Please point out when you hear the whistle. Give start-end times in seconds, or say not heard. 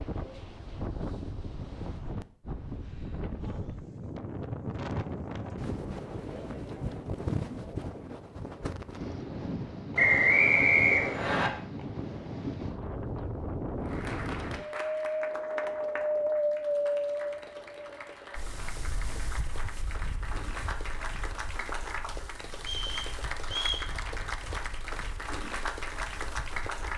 9.9-11.5, 22.6-23.9.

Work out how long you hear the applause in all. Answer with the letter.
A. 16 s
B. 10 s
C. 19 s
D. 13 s
D.